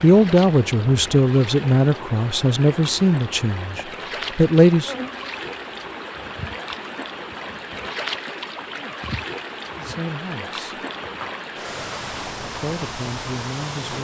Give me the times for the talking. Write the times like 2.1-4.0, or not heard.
0.0-5.0, 9.8-10.8, 12.6-13.9.